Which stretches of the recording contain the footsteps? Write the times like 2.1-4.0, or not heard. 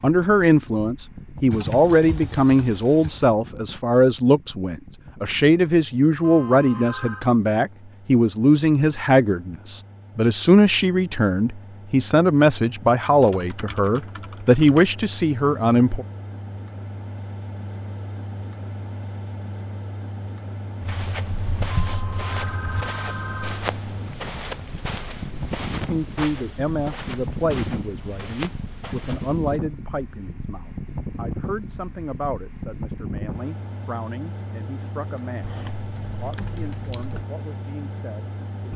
20.9-29.6.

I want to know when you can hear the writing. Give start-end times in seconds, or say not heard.
not heard.